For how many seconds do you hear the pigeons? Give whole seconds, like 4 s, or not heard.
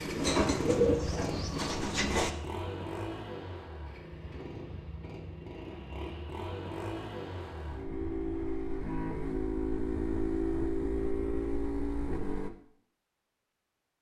2 s.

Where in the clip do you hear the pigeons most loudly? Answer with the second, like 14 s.
1 s.